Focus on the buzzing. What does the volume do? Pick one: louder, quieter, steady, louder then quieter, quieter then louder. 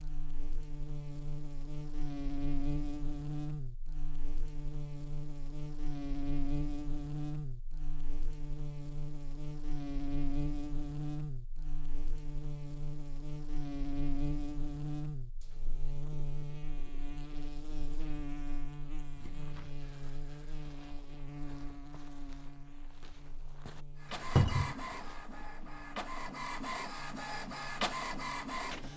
quieter.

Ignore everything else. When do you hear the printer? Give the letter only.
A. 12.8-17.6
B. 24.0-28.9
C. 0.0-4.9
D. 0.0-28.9
B.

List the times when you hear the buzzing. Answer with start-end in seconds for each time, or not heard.
0.0-28.9.